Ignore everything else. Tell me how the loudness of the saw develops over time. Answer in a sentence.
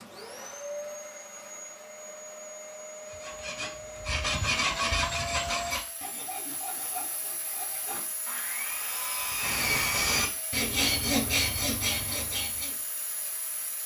The loudness of the saw goes down, then up.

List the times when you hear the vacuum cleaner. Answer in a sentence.
The vacuum cleaner can be heard from 0.0 to 13.8 s.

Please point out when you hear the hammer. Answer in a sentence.
The hammer can't be heard in this clip.